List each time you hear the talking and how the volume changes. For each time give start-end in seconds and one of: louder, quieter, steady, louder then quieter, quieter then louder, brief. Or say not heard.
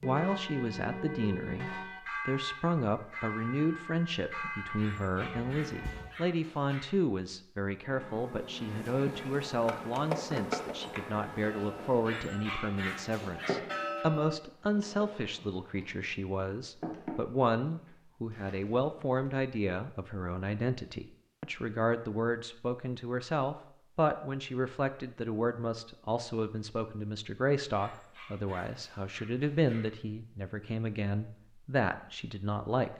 0.0-32.9 steady.